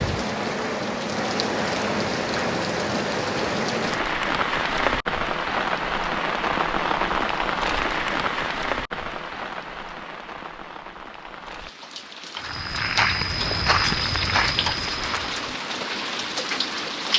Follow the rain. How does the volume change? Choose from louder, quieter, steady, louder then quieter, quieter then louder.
quieter then louder.